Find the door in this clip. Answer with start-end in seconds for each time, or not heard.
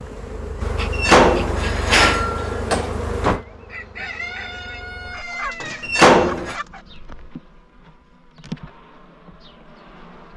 0.9-3.4, 5.8-6.5.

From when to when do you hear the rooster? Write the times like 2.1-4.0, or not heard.
3.5-6.8.